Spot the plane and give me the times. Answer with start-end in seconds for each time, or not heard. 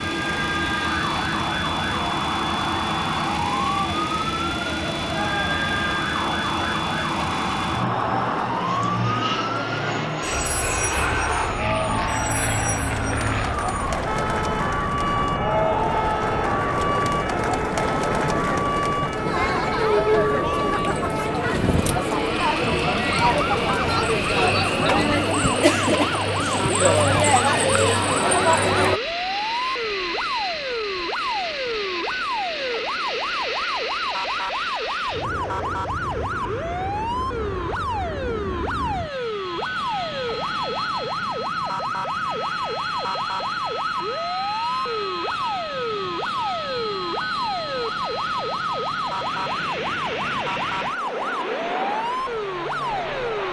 0.0-53.4.